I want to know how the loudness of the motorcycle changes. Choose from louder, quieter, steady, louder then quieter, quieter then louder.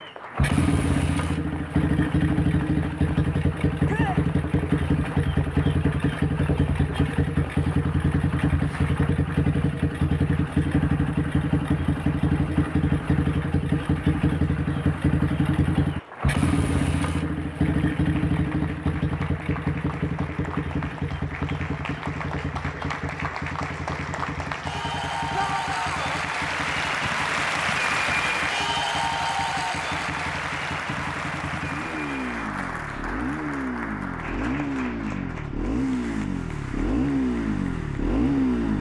quieter then louder.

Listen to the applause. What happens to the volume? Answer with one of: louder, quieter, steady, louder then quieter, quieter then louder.
louder then quieter.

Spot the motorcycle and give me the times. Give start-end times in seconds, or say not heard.
0.0-38.7.